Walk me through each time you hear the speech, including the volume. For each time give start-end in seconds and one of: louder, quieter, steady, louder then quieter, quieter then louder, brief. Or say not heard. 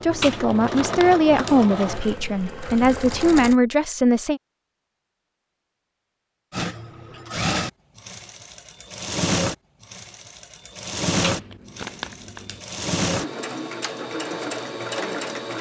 0.0-4.4 quieter then louder.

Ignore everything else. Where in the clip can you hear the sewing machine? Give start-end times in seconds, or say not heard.
0.0-3.5, 6.5-15.5.